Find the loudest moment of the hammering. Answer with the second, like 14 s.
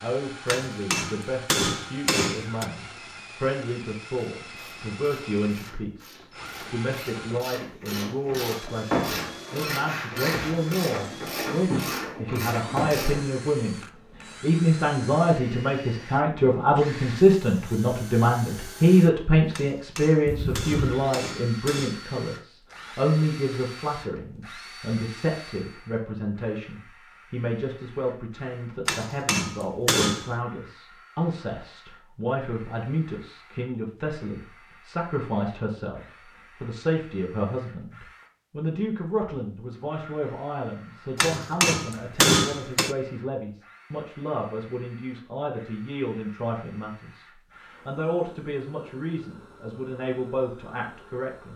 42 s.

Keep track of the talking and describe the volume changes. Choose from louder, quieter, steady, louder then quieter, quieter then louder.
louder then quieter.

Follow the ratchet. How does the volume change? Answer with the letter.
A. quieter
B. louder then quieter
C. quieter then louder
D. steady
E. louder
E.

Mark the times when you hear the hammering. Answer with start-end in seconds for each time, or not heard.
0.5-2.6, 19.5-22.1, 28.9-30.4, 41.1-43.0.